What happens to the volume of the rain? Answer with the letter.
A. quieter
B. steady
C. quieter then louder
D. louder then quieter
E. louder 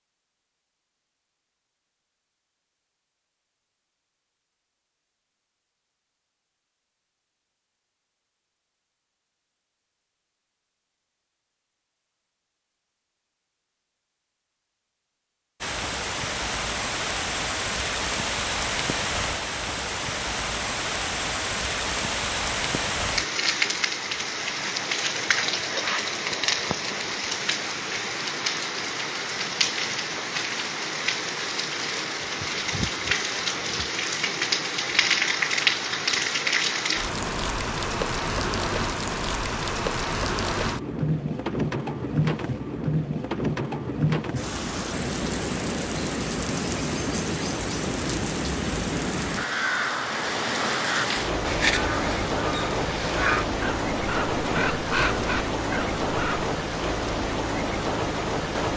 B.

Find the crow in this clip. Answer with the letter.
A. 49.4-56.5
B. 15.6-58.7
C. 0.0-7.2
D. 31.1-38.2
A.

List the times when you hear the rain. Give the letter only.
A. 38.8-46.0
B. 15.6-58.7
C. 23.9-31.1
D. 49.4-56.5
B.